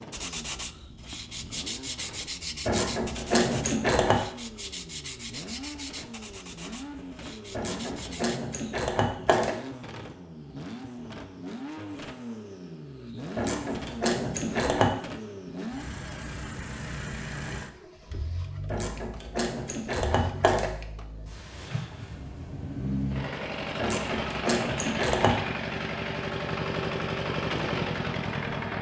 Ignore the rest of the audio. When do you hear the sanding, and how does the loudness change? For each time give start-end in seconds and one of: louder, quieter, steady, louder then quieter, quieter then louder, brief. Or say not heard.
0.1-8.4 quieter.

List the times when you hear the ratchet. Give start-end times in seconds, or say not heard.
2.6-4.2, 7.5-9.6, 13.3-14.9, 18.7-20.7, 23.8-25.4.